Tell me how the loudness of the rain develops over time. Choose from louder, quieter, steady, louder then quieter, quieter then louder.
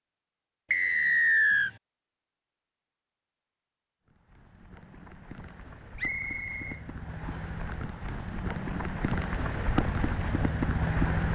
louder.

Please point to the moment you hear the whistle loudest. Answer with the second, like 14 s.
1 s.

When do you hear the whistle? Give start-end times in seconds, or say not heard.
0.7-1.7, 6.0-7.5.